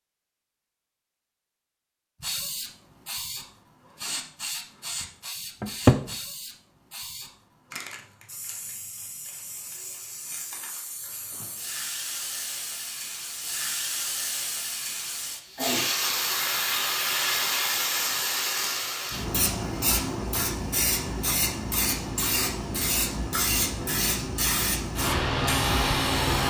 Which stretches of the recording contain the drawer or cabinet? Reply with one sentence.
The drawer or cabinet can be heard from 5.6 to 6.1 s.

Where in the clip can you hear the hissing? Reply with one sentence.
You can hear the hissing from 2.2 to 26.4 s.